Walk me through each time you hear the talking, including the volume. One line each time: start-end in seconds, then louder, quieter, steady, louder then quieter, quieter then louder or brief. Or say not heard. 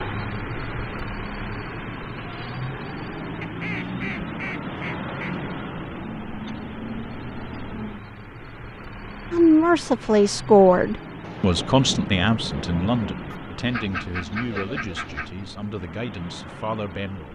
9.3-17.3 quieter.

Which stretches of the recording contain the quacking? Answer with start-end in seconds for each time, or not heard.
3.4-5.3, 13.3-15.3.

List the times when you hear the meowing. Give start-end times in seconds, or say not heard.
not heard.